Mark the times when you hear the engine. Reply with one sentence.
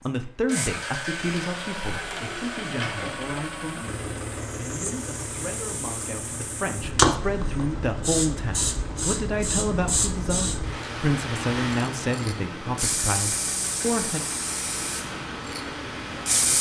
You can hear the engine from 0.0 to 16.5 s.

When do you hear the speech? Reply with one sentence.
You can hear the speech from 0.0 to 14.2 s.